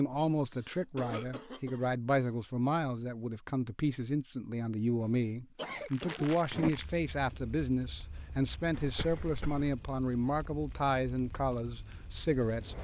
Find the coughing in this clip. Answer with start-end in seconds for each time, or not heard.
0.5-1.9, 5.0-6.9, 8.7-9.8.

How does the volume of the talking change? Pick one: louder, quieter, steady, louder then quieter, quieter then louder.
steady.